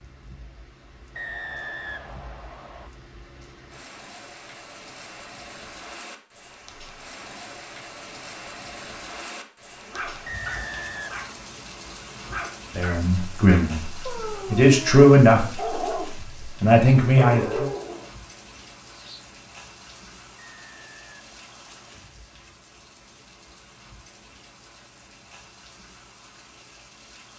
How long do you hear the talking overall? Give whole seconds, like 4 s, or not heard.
4 s.